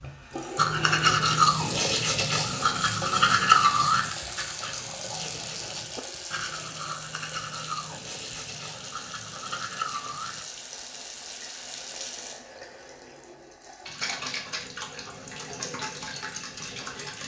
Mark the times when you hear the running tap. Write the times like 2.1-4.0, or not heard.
0.0-17.2.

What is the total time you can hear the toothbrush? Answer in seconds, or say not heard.
10 s.